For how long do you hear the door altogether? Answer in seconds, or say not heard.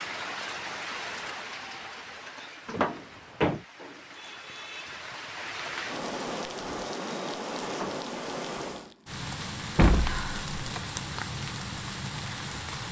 2 s.